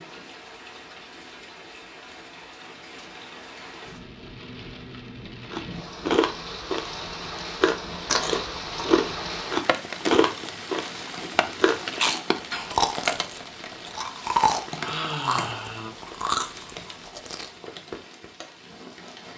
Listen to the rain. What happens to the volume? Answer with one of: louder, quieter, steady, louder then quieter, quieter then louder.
louder then quieter.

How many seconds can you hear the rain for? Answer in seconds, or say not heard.
19 s.